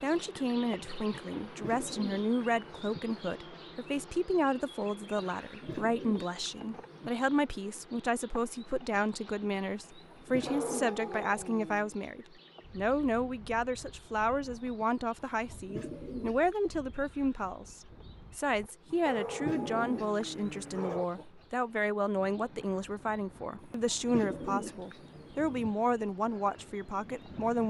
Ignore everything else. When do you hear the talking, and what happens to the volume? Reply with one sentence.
The talking can be heard from 0.0 to 27.6 s, at a steady volume.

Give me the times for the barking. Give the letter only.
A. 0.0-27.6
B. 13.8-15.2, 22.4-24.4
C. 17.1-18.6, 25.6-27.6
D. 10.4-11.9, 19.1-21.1
D.